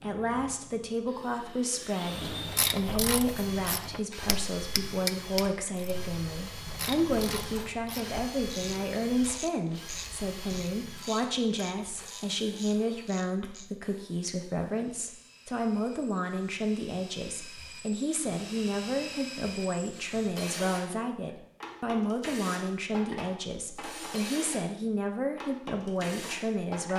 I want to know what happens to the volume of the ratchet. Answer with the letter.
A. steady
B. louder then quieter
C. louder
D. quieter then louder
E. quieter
E.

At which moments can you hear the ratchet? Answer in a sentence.
You can hear the ratchet from 2.2 to 13.7 s.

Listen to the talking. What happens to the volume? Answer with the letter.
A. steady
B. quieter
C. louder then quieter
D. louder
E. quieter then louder
A.